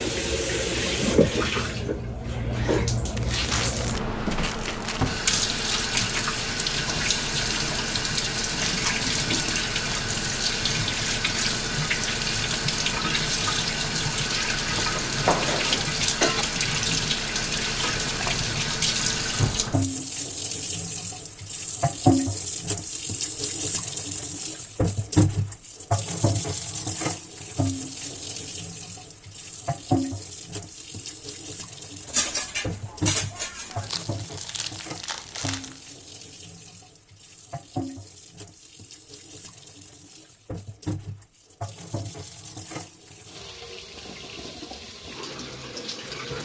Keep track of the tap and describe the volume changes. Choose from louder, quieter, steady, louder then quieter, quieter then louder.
quieter.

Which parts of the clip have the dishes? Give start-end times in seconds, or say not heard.
14.9-16.4, 32.0-34.0.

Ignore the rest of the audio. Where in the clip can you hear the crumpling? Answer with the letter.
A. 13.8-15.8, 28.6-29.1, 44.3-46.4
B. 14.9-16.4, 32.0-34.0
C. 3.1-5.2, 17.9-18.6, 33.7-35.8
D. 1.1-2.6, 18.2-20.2
C.